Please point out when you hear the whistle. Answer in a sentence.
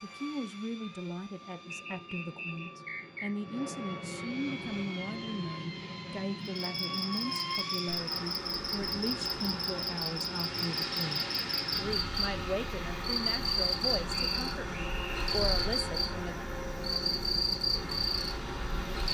You can hear the whistle from 1.7 to 3.3 s and from 14.1 to 15.3 s.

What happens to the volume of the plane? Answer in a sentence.
The loudness of the plane goes up.